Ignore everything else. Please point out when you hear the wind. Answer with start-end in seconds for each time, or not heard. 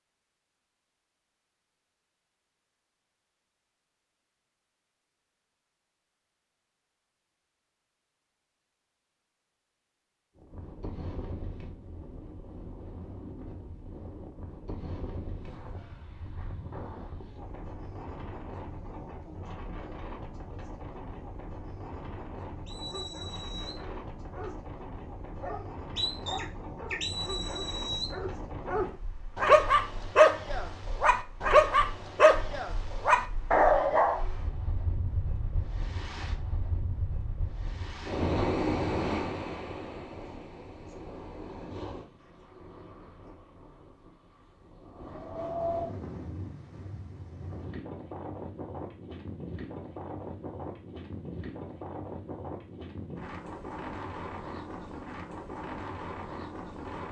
10.3-57.0.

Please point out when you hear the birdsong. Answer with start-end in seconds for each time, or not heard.
not heard.